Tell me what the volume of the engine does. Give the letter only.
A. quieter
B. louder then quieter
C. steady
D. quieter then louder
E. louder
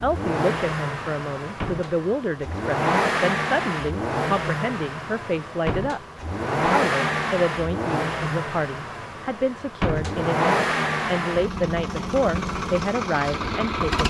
C.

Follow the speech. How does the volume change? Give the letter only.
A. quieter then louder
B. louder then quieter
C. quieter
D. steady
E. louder
D.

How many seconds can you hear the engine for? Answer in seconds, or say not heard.
14 s.